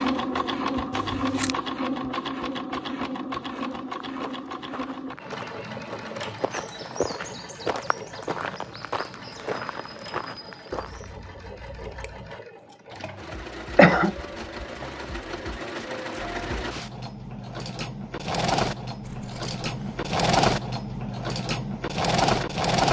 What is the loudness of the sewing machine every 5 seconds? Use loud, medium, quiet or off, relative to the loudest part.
medium, quiet, quiet, medium, loud.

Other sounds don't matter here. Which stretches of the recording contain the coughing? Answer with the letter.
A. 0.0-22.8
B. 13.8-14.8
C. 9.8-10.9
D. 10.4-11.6
B.